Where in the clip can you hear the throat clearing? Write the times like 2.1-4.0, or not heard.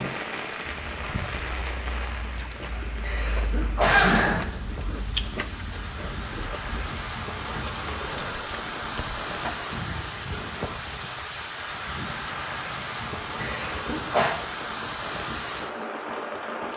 3.0-4.5, 13.4-14.3.